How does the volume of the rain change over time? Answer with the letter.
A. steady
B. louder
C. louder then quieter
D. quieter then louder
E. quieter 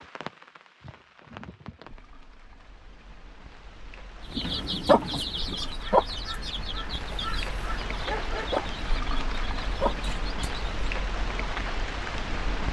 B.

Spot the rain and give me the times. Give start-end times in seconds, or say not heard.
0.0-12.6.